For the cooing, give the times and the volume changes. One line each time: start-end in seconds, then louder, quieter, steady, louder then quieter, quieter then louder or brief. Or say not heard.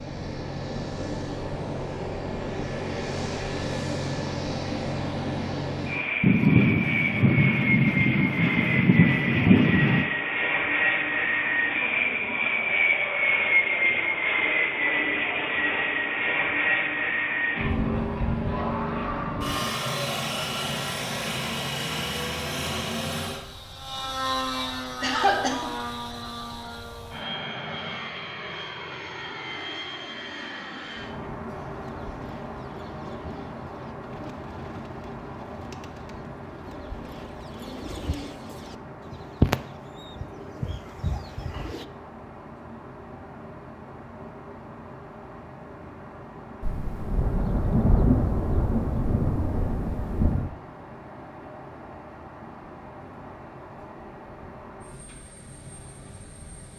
31.7-41.9 louder then quieter.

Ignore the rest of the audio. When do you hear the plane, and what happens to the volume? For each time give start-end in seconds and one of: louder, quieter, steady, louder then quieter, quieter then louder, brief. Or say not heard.
0.0-56.7 quieter.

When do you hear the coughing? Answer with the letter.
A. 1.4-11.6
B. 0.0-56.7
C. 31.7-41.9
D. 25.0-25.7
D.